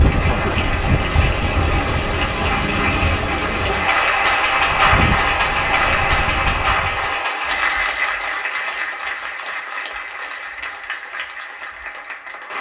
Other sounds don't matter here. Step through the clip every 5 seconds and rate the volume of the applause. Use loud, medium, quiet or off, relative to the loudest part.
loud, loud, medium.